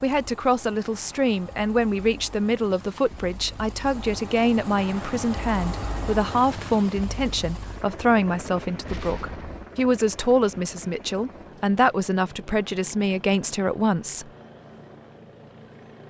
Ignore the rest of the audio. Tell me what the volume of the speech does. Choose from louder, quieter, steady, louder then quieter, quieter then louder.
steady.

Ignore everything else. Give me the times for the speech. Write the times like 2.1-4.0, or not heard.
0.0-14.3.